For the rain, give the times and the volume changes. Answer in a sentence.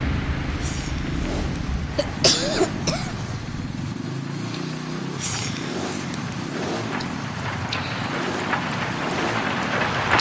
You can hear the rain from 0.0 to 10.1 s, getting quieter then louder.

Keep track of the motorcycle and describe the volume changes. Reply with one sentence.
The volume of the motorcycle stays about the same.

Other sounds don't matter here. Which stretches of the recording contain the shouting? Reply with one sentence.
The shouting can't be heard in this clip.